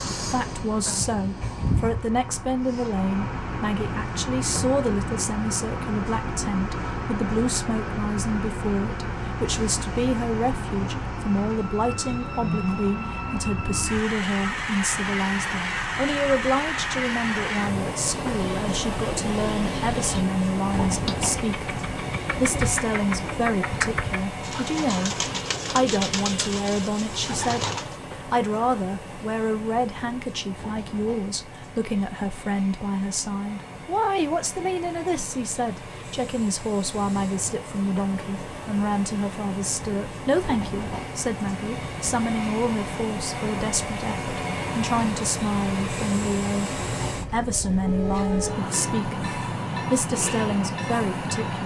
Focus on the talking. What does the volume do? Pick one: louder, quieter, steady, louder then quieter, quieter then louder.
steady.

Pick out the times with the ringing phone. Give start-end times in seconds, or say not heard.
not heard.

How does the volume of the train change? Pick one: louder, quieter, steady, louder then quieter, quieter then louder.
quieter then louder.